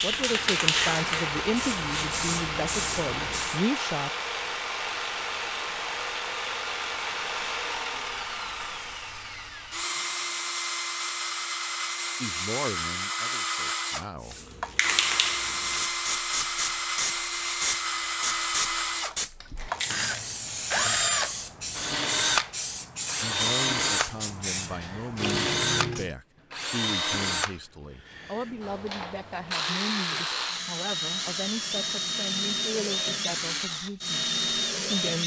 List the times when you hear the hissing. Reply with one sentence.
You can hear the hissing from 0.0 to 3.6 s and from 14.2 to 26.1 s.